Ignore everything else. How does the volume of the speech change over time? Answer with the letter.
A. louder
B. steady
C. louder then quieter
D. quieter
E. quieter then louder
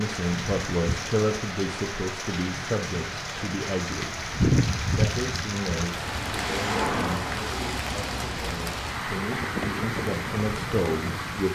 E.